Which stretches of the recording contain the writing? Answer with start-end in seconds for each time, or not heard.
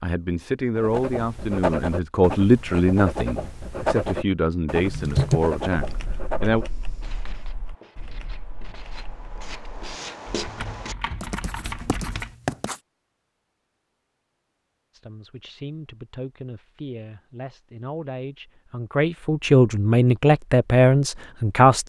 0.8-12.8.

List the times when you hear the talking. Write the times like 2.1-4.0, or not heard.
0.0-6.7, 14.9-21.8.